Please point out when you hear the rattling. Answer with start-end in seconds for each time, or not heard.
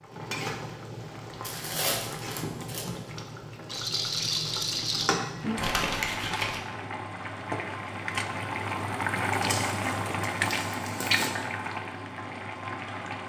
3.6-5.2.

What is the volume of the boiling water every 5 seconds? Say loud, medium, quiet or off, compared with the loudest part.
medium, loud, loud.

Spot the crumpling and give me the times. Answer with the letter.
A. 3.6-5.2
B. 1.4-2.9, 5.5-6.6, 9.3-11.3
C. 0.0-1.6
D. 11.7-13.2
B.